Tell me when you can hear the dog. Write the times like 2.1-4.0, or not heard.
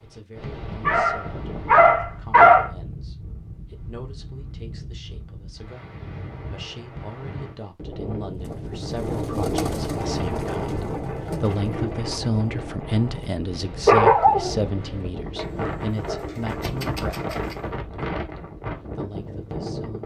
0.8-2.7, 13.8-14.6.